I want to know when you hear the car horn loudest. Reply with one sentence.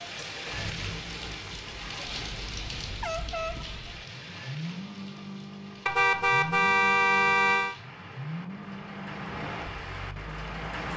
The volume of the car horn peaks at 7 seconds.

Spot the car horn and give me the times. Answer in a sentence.
You can hear the car horn from 2.3 to 3.9 s and from 5.8 to 7.8 s.